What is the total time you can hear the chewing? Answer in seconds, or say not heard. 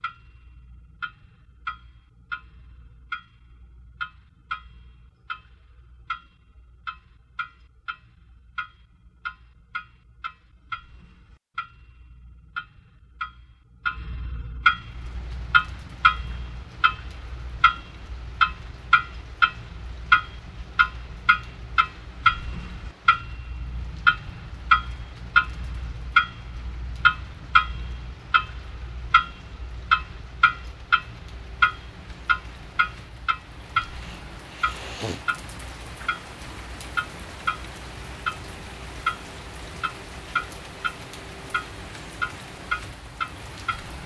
not heard.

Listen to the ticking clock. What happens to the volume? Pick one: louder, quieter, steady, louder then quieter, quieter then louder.
louder then quieter.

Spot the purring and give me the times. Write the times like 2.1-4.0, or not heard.
not heard.